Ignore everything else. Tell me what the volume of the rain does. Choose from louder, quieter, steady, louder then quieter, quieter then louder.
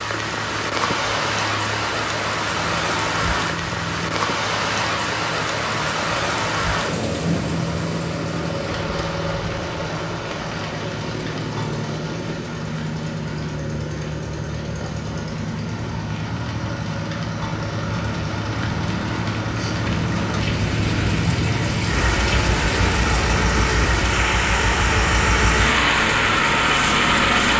quieter then louder.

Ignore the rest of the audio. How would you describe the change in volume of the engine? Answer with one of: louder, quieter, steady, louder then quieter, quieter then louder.
louder.